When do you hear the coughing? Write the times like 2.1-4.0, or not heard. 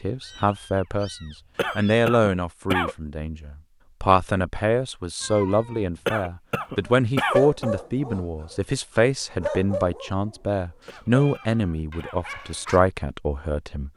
1.6-3.0, 6.0-7.7, 10.8-12.2.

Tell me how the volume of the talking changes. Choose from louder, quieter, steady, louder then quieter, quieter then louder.
steady.